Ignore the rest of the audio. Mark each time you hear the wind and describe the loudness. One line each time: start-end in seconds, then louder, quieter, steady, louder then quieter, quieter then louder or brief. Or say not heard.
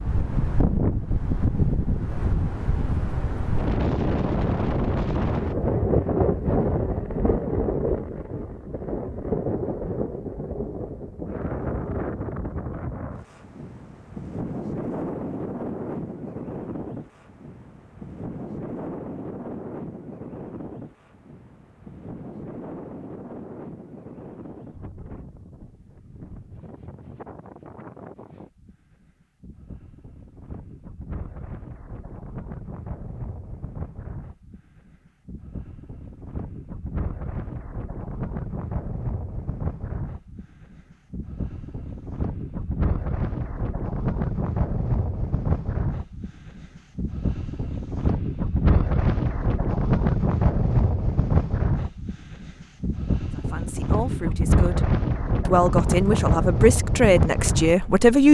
0.0-58.2 quieter then louder.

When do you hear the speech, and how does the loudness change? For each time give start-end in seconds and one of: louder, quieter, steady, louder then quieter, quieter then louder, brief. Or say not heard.
53.4-58.2 louder.